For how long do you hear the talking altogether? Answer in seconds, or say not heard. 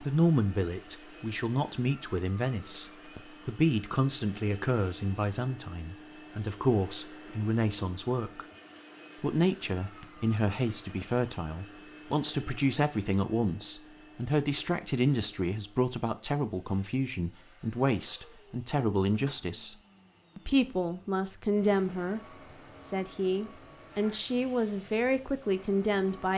24 s.